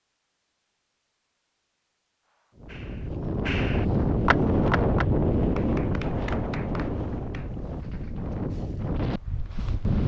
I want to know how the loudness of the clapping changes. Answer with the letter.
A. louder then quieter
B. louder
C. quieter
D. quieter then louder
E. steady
A.